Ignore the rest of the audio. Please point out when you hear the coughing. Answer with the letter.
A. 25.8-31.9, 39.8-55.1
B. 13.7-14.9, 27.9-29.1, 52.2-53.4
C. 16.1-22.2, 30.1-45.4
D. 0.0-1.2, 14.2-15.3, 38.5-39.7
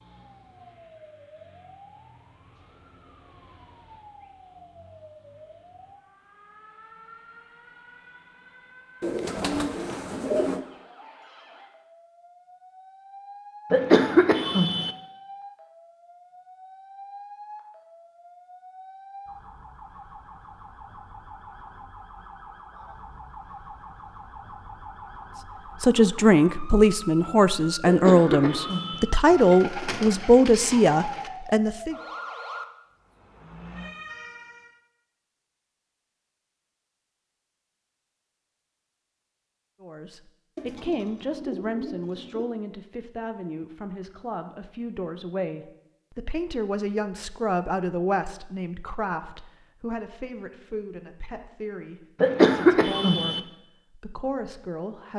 B.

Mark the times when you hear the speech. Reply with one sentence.
The speech can be heard from 25.8 to 31.9 s and from 39.8 to 55.1 s.